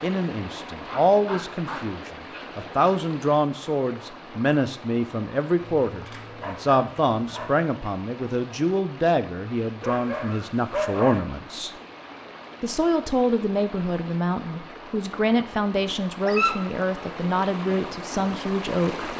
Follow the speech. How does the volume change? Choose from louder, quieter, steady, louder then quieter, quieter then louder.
steady.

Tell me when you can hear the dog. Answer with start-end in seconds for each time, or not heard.
0.8-2.6, 5.8-7.5, 9.8-11.2, 16.2-16.6.